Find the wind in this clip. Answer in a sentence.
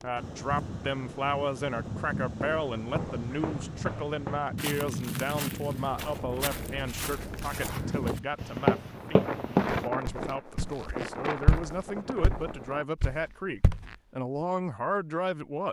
The wind can be heard from 0.0 to 12.8 s.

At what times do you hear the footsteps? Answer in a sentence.
You can hear the footsteps from 2.4 to 13.9 s.